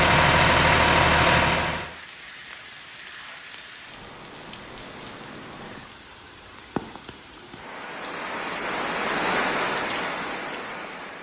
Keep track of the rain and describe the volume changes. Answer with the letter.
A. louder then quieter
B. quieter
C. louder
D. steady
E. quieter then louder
C.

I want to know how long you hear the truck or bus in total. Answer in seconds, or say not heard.
2 s.